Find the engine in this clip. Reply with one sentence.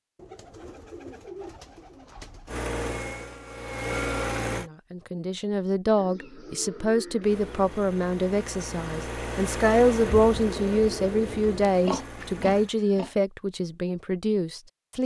You can hear the engine from 2.5 to 4.7 s and from 7.2 to 12.7 s.